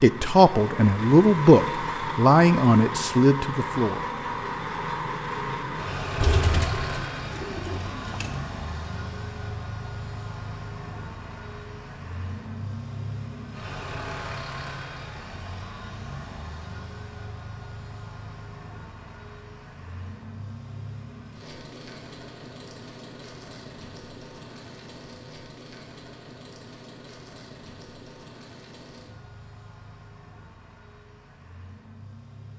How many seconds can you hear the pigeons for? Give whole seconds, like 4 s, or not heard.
2 s.